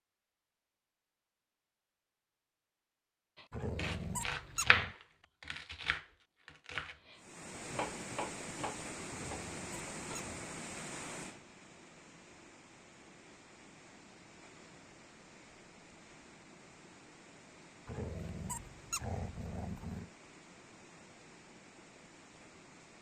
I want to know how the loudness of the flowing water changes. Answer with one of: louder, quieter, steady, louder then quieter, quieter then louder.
quieter.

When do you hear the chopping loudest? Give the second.
5 s.